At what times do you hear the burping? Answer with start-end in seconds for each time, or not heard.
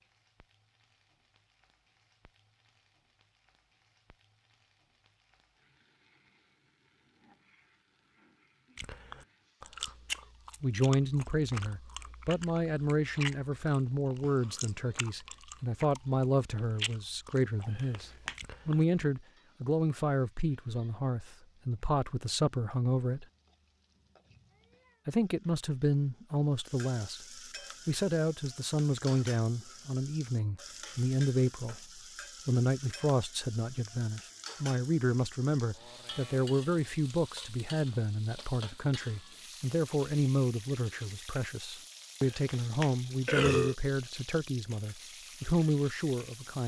17.6-18.4, 42.2-43.8.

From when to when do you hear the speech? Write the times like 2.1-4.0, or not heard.
10.6-23.2, 25.1-46.6.